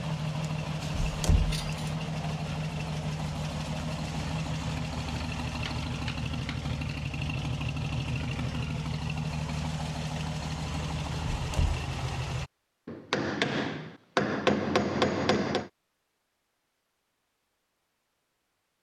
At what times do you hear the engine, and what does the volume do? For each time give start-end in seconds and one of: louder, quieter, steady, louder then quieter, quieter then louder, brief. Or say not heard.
0.0-12.5 steady.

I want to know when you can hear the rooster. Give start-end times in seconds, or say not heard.
not heard.